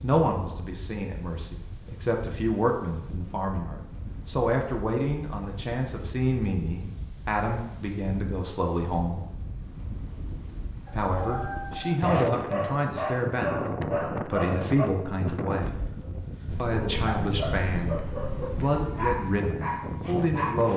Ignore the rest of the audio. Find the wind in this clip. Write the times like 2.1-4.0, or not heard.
0.0-20.7.